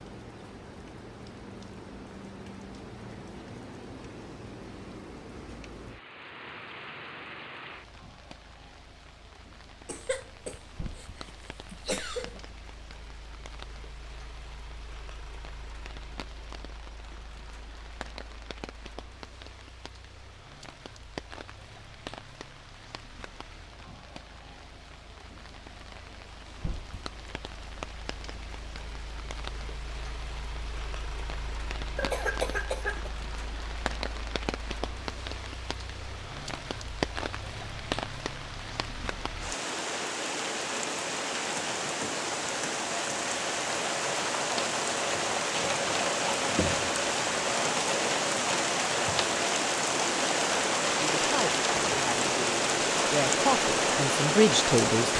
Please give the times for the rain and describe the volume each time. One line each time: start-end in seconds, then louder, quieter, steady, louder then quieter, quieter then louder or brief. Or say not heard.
0.0-55.1 louder.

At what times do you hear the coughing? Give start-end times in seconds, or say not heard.
9.8-12.4, 31.9-33.1.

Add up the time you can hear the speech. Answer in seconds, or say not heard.
4 s.